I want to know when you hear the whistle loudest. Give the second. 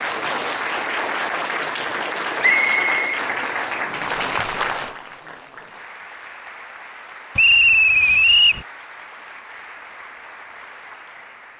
8 s.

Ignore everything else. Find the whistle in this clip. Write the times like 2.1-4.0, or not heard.
2.4-3.2, 7.3-8.7.